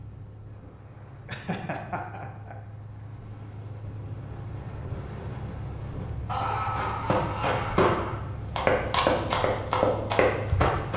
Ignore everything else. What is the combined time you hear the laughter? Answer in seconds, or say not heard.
3 s.